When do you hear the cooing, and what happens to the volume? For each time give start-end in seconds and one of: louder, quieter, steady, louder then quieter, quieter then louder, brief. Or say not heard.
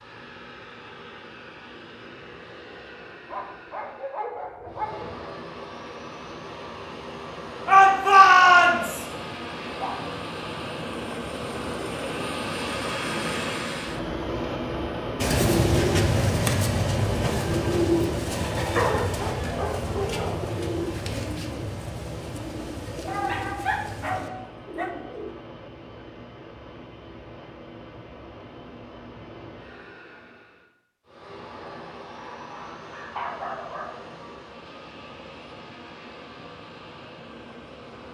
15.2-25.4 quieter.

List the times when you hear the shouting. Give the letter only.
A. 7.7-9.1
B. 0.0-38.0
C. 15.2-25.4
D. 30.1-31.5
A.